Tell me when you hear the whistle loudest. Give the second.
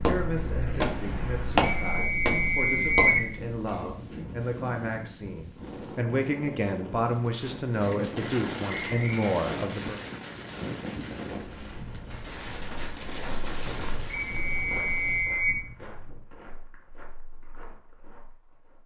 3 s.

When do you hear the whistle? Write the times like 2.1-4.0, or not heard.
1.6-3.2, 8.7-9.3, 14.1-15.6.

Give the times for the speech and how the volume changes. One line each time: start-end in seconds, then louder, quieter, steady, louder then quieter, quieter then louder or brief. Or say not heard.
0.0-10.0 louder.